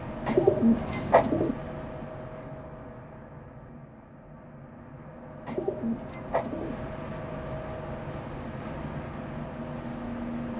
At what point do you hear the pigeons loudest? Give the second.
1 s.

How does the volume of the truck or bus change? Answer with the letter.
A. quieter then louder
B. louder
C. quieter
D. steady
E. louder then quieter
A.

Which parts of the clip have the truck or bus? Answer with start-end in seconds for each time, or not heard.
0.0-10.5.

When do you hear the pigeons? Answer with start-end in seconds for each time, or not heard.
0.2-1.6, 5.5-6.8.